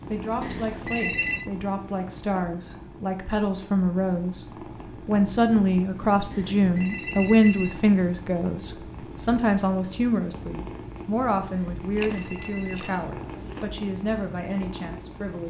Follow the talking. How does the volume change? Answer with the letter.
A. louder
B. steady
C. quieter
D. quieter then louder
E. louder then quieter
E.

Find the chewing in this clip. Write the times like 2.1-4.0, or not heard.
11.9-13.7.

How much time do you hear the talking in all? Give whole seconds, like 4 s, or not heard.
15 s.